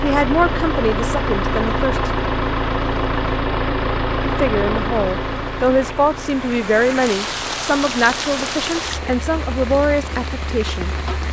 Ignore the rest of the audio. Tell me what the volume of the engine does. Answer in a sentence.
The loudness of the engine goes down.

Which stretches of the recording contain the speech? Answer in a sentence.
The speech can be heard from 0.0 to 2.1 s and from 4.2 to 10.9 s.